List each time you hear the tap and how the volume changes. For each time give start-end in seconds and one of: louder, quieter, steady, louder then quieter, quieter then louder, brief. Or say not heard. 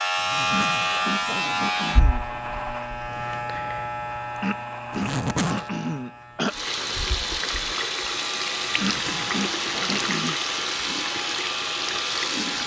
6.5-12.6 steady.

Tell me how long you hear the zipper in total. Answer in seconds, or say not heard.
4 s.